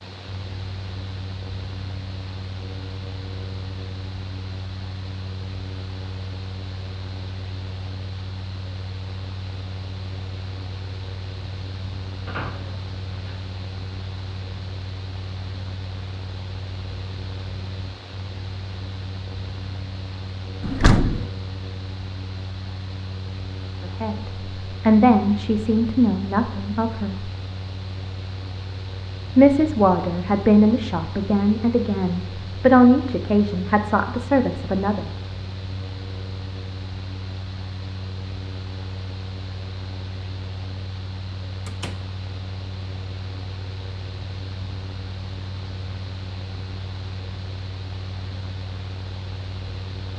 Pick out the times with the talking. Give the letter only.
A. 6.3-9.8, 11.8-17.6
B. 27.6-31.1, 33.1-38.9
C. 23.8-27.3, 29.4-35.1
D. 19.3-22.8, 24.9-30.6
C.